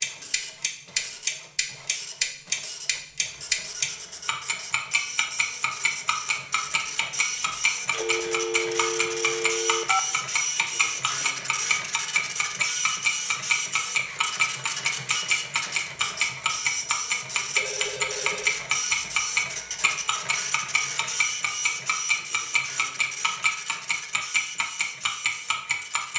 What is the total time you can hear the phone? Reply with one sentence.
The phone can be heard for 3 seconds in total.